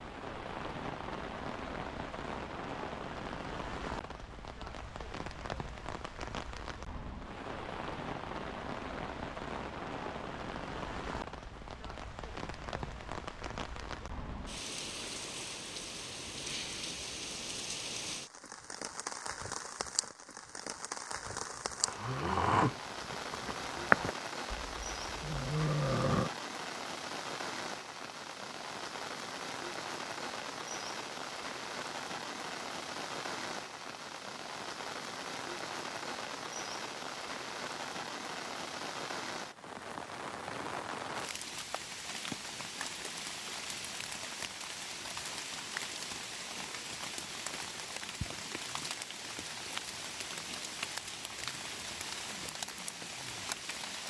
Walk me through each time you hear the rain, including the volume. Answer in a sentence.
The rain can be heard from 0.0 to 54.0 s, at a steady volume.